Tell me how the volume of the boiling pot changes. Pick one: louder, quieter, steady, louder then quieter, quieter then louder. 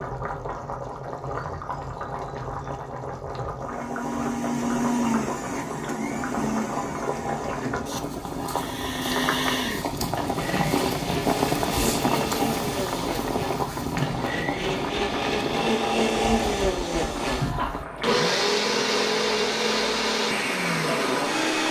louder then quieter.